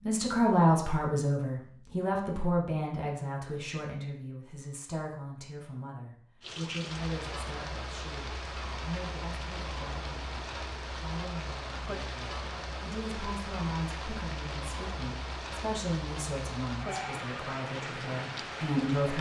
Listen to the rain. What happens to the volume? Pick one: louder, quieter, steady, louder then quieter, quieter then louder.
steady.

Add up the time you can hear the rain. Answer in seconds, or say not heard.
13 s.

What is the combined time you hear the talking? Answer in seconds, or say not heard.
19 s.